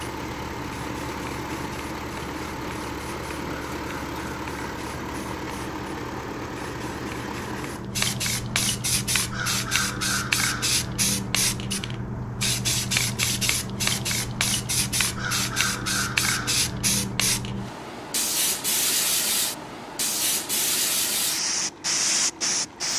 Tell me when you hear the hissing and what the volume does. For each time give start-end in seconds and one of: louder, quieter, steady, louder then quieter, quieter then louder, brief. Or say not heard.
0.0-22.9 louder.